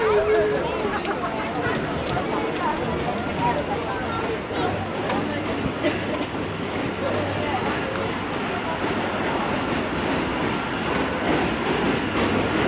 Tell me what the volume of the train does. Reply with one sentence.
The loudness of the train goes up.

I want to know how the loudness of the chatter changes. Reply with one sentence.
The volume of the chatter goes down.